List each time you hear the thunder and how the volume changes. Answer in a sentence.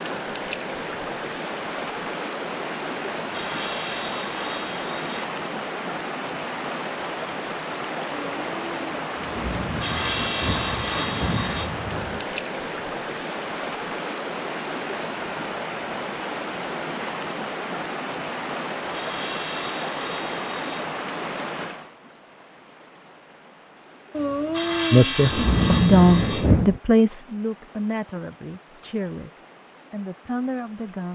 The thunder can be heard from 8.1 to 12.2 s, getting louder; and briefly from 24.1 to 26.8 s.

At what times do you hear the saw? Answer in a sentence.
You can hear the saw from 3.3 to 5.4 s, from 9.8 to 11.7 s, from 18.9 to 21.0 s and from 24.5 to 26.5 s.